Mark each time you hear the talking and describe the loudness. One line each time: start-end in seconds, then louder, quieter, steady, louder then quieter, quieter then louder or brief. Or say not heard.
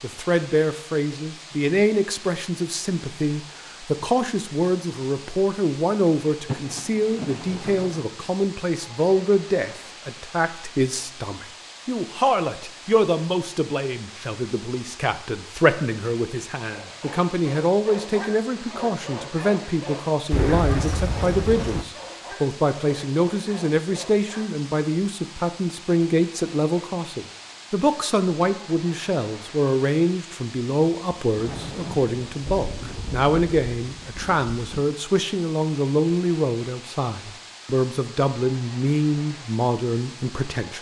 0.0-40.7 steady.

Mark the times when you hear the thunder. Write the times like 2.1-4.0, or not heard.
6.5-8.1, 20.3-21.9, 31.4-34.9.